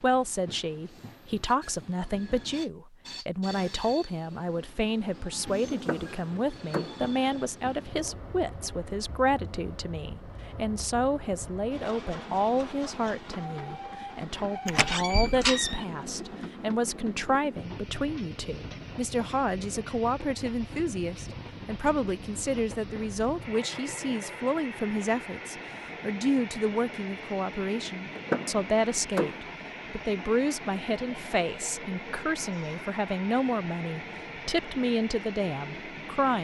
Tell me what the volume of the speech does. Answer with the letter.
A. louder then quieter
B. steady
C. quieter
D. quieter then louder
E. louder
B.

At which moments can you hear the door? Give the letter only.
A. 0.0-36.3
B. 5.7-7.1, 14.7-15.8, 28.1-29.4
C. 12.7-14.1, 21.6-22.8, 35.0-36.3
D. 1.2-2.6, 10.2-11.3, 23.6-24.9
B.